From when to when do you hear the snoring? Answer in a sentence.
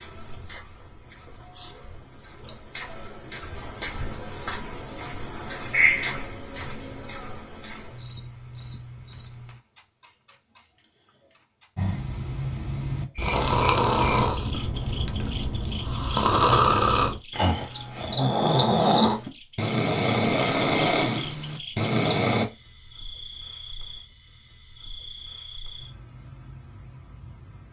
The snoring can be heard from 11.8 to 22.4 s.